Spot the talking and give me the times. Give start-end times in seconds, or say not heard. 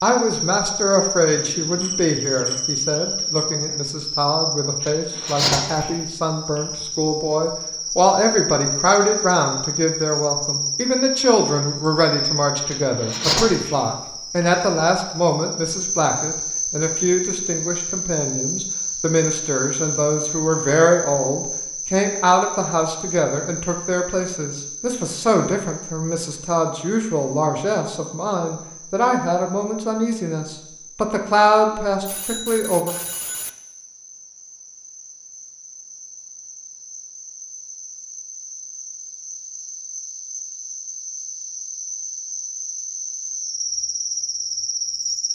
0.0-33.0.